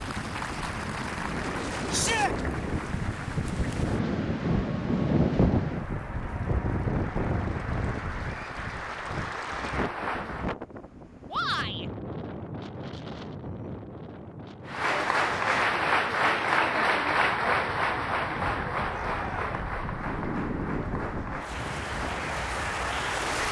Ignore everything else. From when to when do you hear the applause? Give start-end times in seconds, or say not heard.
0.0-10.5, 14.7-23.4.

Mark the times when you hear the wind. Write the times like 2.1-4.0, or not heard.
0.0-23.4.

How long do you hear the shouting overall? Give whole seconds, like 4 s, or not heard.
2 s.